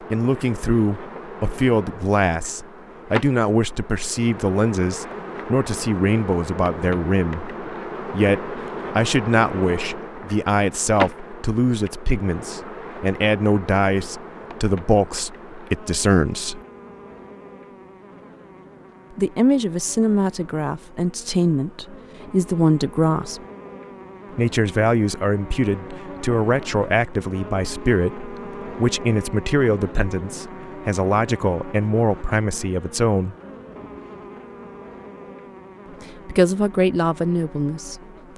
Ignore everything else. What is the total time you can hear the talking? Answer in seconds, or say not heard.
32 s.